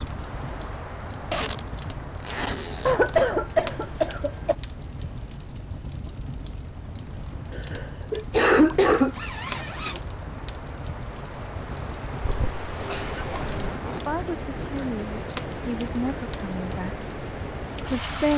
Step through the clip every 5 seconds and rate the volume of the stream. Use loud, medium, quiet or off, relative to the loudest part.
medium, quiet, loud, loud.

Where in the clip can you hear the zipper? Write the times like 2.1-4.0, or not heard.
1.3-3.3, 8.6-10.1, 13.2-14.2.